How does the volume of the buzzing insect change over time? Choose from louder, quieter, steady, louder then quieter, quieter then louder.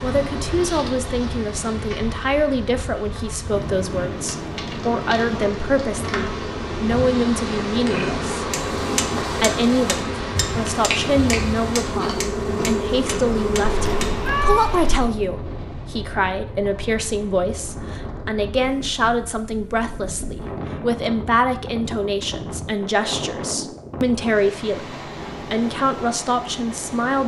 louder.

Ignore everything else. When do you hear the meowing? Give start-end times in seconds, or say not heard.
13.7-15.1.